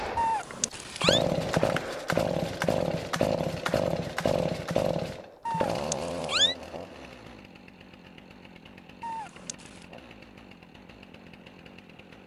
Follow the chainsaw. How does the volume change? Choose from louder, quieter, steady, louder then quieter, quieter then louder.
quieter.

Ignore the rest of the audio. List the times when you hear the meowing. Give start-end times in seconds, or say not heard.
0.1-1.2, 5.5-6.5, 9.0-9.8.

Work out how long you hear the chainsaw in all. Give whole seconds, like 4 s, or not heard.
12 s.